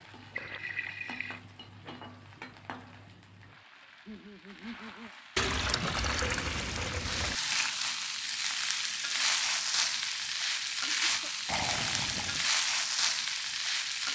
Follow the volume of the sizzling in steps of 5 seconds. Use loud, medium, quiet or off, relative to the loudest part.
quiet, loud, loud.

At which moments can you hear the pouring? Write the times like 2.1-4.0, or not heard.
0.3-1.4, 5.3-7.3, 11.4-12.5.